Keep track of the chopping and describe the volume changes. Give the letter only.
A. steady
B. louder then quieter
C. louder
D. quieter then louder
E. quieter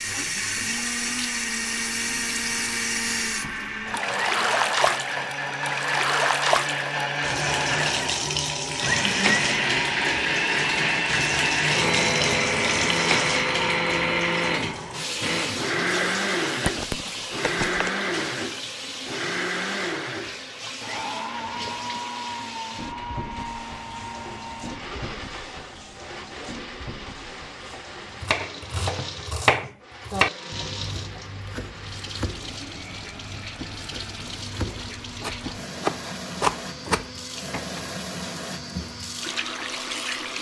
D.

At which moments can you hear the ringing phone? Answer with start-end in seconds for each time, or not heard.
16.6-17.9.